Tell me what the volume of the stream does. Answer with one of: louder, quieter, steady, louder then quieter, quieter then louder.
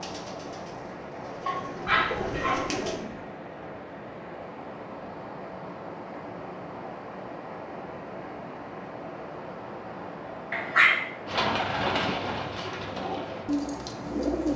steady.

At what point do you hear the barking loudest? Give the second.
11 s.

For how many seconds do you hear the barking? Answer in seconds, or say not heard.
2 s.